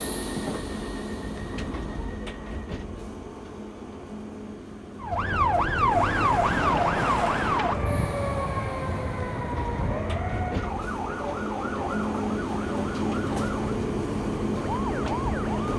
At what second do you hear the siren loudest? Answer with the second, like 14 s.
6 s.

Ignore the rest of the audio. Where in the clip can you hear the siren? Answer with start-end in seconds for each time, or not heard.
5.0-15.7.